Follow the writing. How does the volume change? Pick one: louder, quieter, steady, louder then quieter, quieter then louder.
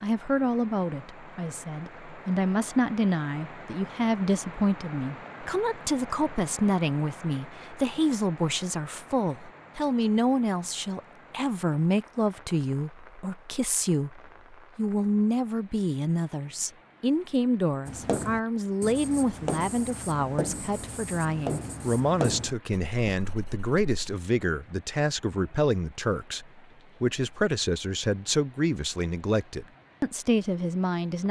louder then quieter.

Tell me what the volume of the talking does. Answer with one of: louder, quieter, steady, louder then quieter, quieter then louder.
steady.